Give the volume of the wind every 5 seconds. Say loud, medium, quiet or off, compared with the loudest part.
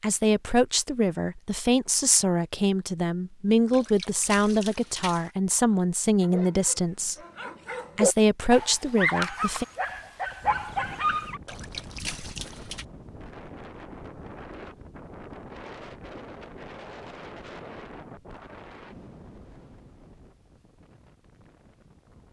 off, off, loud, loud, quiet.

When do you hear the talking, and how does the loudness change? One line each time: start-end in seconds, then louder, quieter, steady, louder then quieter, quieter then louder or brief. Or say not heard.
0.0-7.2 steady
8.0-9.7 brief.